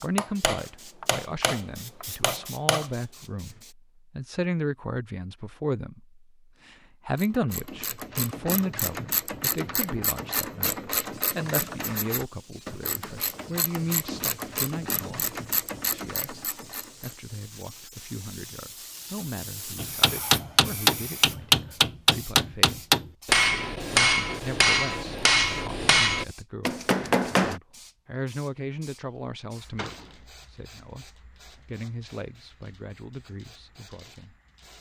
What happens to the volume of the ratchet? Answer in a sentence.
The volume of the ratchet stays about the same.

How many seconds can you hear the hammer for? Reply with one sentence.
You can hear the hammer for 11 seconds altogether.